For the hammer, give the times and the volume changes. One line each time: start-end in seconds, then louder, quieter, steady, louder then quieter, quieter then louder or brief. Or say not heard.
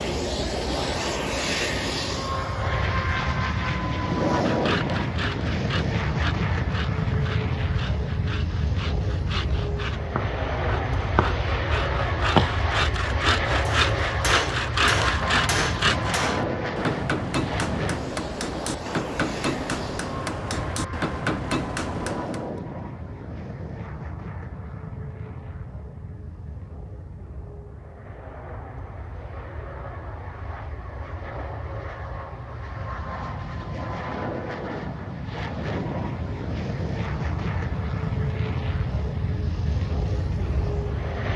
13.7-22.5 steady.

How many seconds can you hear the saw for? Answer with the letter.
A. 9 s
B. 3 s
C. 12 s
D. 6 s
C.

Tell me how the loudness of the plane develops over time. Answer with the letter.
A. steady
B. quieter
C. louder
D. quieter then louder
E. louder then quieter
D.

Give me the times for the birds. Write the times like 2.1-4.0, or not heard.
not heard.